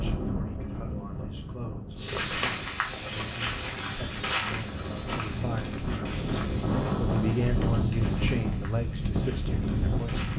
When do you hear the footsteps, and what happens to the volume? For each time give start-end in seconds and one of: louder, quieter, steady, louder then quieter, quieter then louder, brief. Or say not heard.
1.9-10.3 quieter.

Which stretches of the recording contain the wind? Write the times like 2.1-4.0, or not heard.
0.0-10.3.